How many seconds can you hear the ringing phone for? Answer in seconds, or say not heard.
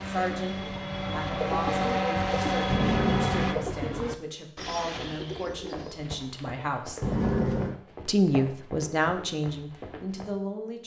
2 s.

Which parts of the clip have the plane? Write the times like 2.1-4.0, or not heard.
0.0-3.5.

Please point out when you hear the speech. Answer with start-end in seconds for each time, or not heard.
0.0-7.0, 8.1-10.8.